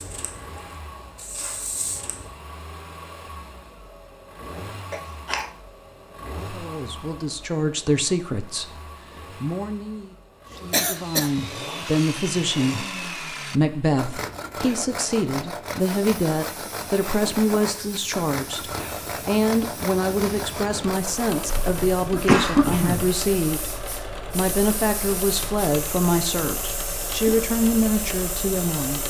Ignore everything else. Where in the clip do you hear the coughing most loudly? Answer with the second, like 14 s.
22 s.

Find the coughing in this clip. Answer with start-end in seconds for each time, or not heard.
4.9-5.5, 10.7-11.8, 21.4-23.1.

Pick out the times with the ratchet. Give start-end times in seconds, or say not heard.
not heard.